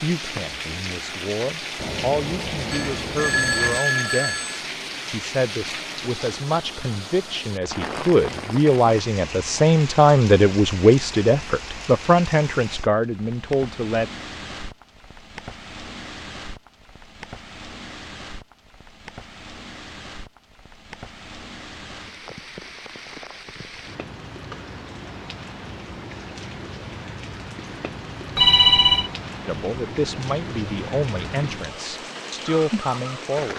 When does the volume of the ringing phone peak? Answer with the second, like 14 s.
29 s.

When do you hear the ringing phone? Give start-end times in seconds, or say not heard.
2.7-4.6, 28.4-29.1.